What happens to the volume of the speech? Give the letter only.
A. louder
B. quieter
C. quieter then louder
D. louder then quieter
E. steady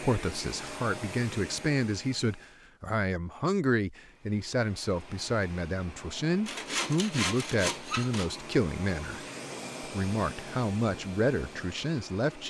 E.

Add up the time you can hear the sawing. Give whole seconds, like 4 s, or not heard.
2 s.